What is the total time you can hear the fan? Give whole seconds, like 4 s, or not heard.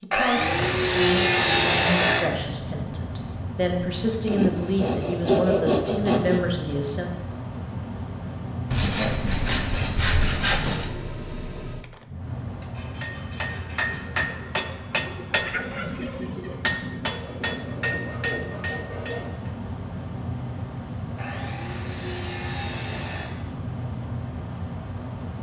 25 s.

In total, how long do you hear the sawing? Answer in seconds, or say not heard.
12 s.